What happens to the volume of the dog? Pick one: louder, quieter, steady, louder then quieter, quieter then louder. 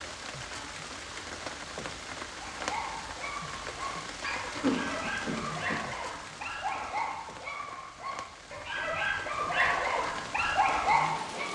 louder.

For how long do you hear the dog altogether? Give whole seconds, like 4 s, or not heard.
9 s.